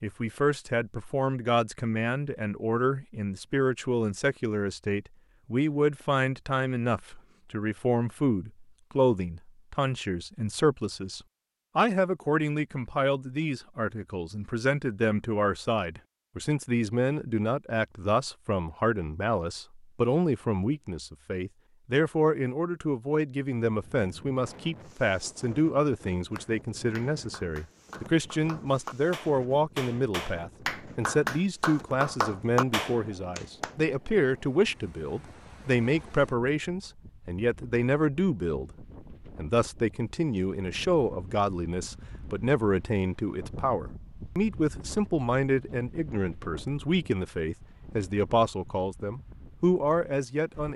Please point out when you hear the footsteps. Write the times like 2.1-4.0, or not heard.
not heard.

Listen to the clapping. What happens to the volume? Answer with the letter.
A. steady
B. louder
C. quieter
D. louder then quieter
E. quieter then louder
B.